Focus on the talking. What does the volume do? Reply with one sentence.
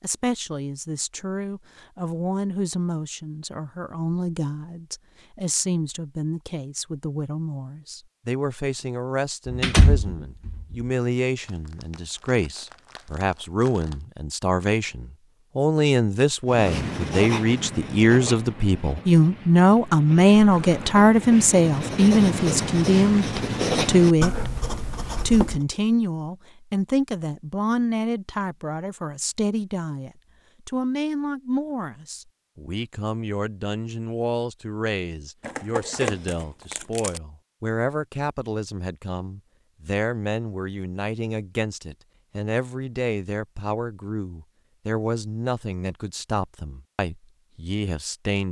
The volume of the talking goes up, then down.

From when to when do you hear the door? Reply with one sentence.
You can hear the door from 9.4 to 10.8 s.